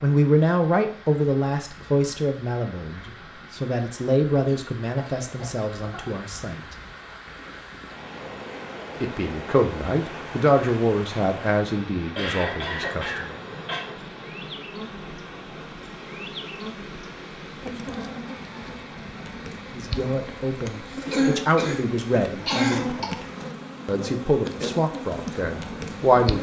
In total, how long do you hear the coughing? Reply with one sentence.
You can hear the coughing for 5 seconds altogether.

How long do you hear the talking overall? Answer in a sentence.
The talking can be heard for 17 seconds in total.